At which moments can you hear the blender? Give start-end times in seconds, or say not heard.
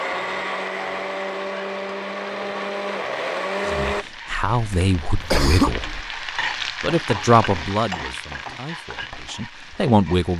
0.0-4.0.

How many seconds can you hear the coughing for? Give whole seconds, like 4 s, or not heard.
2 s.